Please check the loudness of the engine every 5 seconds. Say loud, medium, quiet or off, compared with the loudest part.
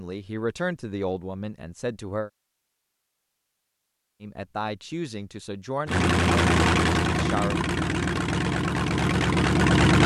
off, loud.